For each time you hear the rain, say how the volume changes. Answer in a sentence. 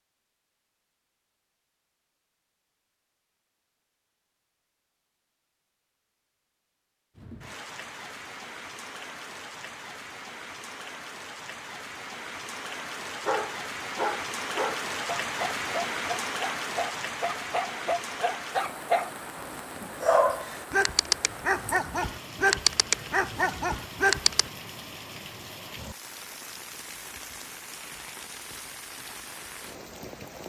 The rain can be heard from 7.2 to 30.4 s, getting louder then quieter.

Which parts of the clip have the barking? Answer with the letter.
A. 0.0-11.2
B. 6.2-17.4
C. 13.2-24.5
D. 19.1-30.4
C.